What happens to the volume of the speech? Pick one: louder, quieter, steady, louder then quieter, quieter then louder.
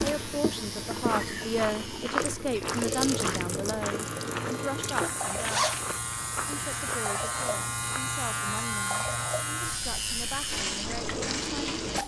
quieter.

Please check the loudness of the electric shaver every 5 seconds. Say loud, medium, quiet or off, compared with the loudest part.
medium, loud, loud.